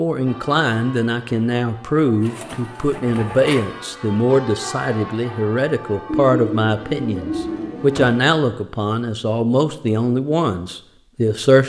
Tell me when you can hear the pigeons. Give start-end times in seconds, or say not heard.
2.2-3.6, 6.0-8.1.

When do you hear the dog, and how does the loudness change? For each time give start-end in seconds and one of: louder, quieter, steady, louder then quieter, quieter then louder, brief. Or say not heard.
not heard.